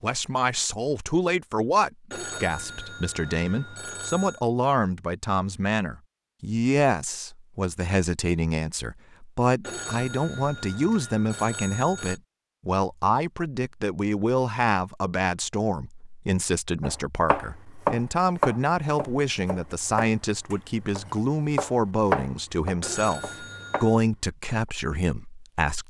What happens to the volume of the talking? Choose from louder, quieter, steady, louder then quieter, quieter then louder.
steady.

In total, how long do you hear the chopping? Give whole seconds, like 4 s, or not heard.
7 s.